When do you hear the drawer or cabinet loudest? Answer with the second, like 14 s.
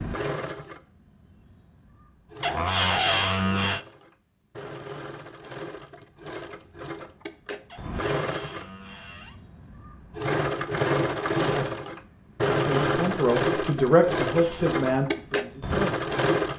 3 s.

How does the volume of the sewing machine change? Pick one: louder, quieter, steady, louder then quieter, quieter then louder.
louder.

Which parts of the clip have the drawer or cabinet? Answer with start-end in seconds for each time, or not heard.
2.4-3.9, 7.7-9.4, 14.2-14.8.